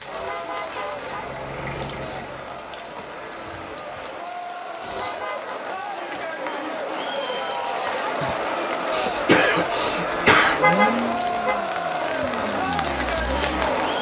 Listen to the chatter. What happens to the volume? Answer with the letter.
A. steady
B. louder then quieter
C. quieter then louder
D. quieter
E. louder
E.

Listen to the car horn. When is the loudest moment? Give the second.
11 s.